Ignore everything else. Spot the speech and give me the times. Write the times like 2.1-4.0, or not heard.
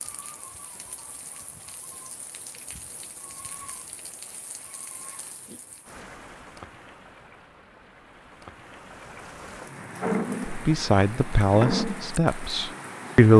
10.4-13.3.